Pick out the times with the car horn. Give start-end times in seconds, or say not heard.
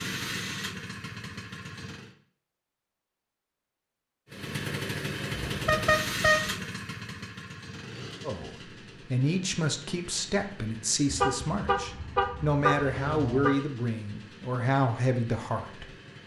5.5-6.5, 11.1-13.6.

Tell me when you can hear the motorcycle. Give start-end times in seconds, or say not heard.
0.0-2.1, 4.3-16.2.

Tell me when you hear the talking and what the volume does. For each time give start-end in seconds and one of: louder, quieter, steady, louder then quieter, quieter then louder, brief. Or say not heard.
8.2-15.8 steady.